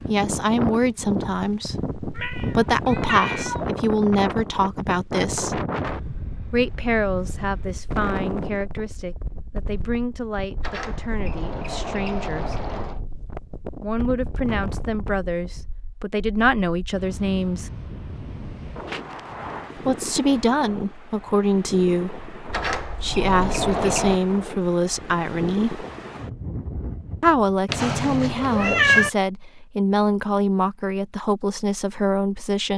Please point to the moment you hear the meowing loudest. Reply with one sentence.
The volume of the meowing peaks at 29 seconds.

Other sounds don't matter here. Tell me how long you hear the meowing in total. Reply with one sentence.
You can hear the meowing for 4 seconds altogether.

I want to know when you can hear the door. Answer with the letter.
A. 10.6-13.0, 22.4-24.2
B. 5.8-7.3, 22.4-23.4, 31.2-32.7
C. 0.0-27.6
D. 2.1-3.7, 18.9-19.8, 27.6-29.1
A.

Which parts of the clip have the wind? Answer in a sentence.
The wind can be heard from 0.0 to 27.6 s.